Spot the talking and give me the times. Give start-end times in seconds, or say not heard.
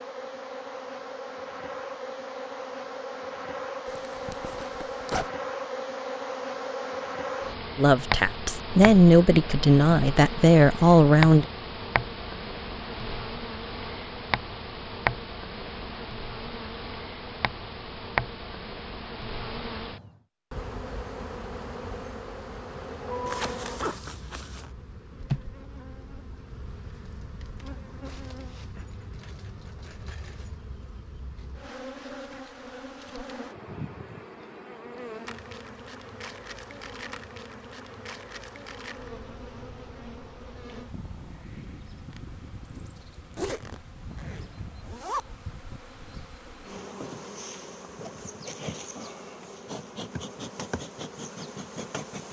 7.8-11.4.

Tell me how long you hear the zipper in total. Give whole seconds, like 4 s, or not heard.
5 s.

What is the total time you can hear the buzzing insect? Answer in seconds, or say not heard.
52 s.